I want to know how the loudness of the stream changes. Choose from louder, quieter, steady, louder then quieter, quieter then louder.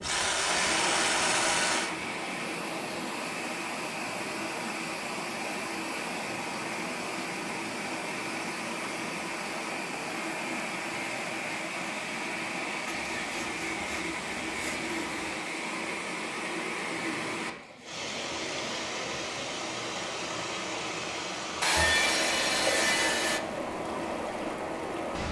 steady.